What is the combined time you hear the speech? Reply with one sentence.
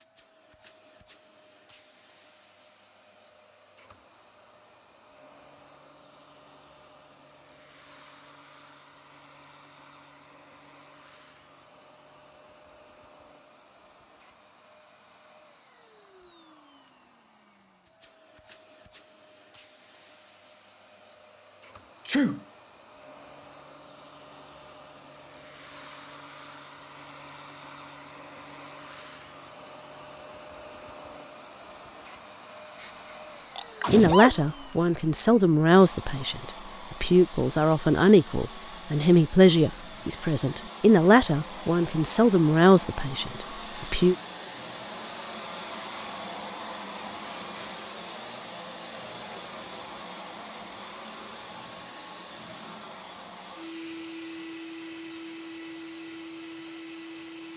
You can hear the speech for 10 seconds altogether.